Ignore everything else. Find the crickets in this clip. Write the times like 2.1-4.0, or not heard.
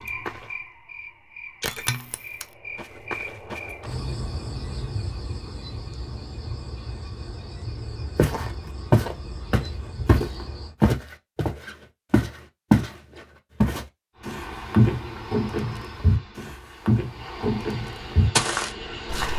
0.0-10.8.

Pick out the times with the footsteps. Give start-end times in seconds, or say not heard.
8.2-12.9, 13.6-19.3.